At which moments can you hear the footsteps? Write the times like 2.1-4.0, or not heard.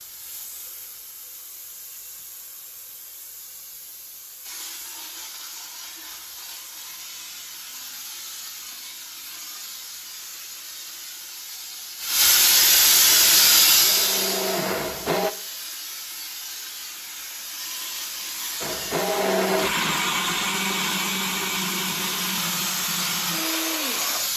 not heard.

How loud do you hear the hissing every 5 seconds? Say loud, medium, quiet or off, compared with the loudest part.
quiet, quiet, loud, quiet, medium.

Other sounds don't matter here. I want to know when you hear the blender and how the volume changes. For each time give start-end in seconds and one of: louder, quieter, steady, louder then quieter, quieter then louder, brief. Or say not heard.
13.1-15.3 brief
18.6-24.3 quieter.